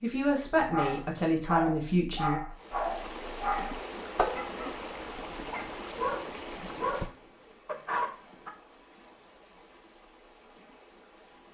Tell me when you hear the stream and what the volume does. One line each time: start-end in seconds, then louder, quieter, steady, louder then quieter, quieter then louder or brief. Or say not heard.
2.5-11.4 quieter.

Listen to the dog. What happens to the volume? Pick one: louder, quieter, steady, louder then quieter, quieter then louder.
steady.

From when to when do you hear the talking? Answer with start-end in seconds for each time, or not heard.
0.0-2.4.